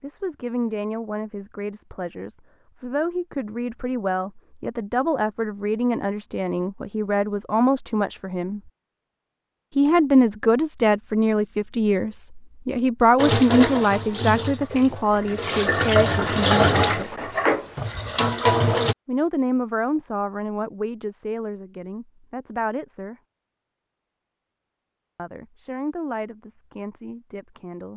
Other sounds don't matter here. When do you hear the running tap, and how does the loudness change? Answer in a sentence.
You can hear the running tap from 13.2 to 18.9 s, getting quieter then louder.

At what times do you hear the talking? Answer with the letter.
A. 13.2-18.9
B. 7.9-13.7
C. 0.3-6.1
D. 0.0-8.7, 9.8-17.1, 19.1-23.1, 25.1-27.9
D.